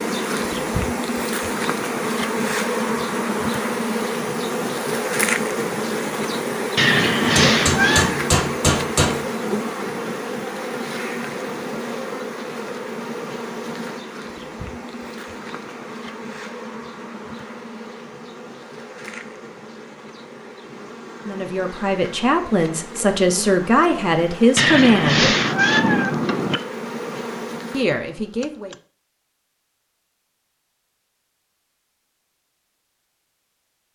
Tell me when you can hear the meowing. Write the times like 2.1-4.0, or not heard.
6.8-8.2, 24.6-26.6.